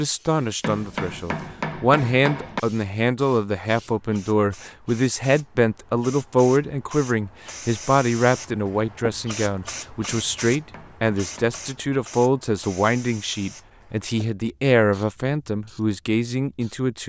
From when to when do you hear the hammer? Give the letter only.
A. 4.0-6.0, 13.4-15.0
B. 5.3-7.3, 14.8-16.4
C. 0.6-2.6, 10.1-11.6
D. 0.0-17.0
C.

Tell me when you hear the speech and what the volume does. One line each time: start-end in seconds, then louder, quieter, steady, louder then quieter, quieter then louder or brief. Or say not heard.
0.0-17.0 steady.